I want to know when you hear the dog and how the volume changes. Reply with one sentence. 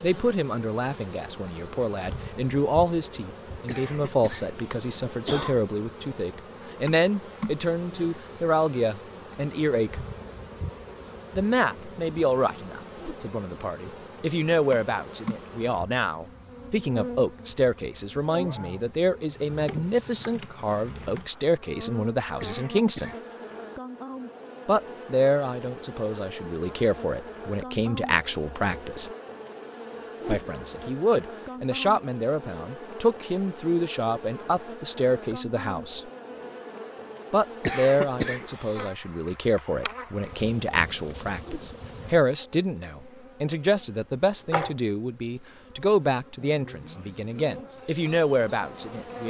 The dog can't be heard in this clip.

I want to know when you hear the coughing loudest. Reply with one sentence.
The volume of the coughing peaks at 38 seconds.